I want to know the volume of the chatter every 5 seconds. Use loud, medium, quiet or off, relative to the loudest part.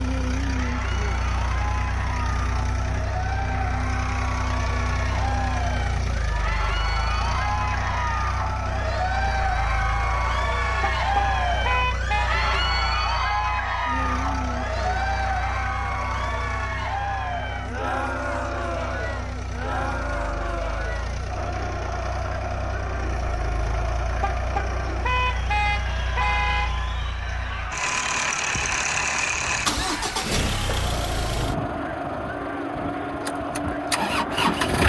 medium, loud, loud, loud, medium, medium, medium.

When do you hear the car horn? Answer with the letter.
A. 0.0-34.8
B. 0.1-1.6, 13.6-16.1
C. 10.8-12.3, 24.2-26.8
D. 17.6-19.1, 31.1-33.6
C.